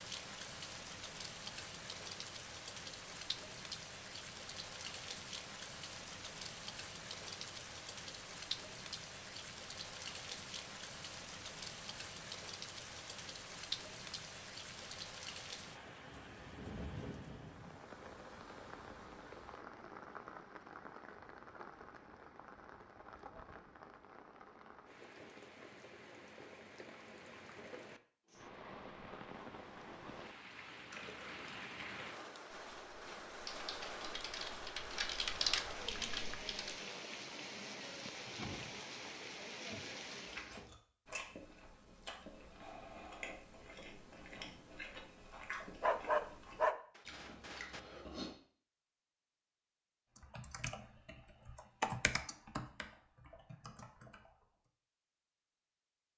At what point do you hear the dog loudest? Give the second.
46 s.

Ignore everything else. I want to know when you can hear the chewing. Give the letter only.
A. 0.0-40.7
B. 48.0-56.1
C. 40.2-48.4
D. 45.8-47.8
C.